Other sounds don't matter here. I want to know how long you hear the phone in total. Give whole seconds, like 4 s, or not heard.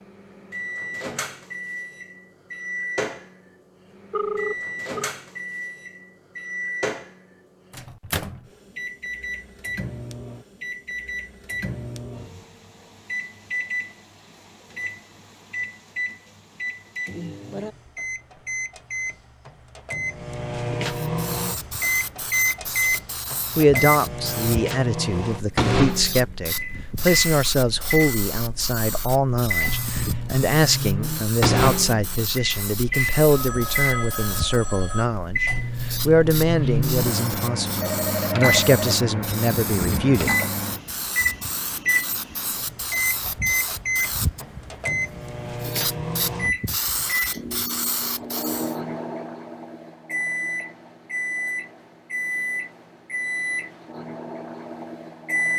4 s.